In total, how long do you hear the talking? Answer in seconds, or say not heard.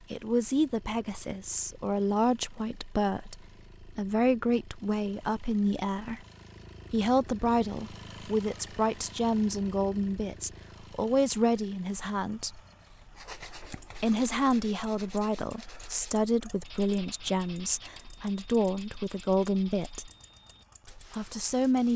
19 s.